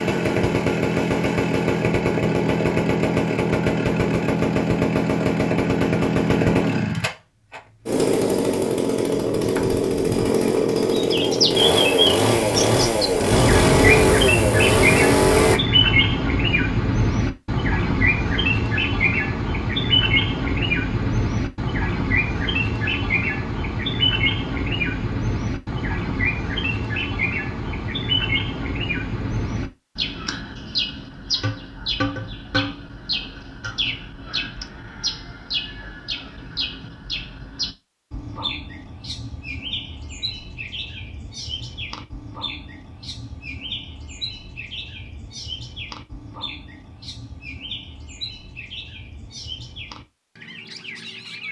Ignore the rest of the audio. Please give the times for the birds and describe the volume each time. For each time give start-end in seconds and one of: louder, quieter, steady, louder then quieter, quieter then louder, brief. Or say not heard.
10.9-51.4 quieter.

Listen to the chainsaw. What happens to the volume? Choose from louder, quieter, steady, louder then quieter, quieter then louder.
steady.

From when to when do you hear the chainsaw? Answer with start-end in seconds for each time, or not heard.
0.0-15.6.